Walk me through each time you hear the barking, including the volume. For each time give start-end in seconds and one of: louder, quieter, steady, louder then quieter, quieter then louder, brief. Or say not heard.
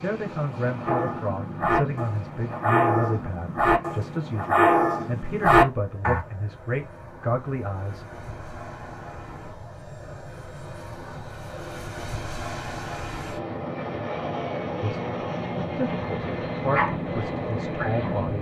0.8-6.2 louder
16.7-18.3 brief.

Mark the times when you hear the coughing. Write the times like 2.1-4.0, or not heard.
not heard.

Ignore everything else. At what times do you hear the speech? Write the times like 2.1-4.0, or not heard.
0.0-8.1, 14.8-18.3.